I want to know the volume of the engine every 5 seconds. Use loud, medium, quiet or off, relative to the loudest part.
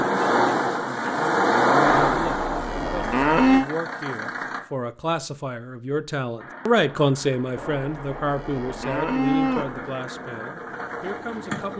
loud, quiet, medium.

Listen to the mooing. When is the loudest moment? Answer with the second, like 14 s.
3 s.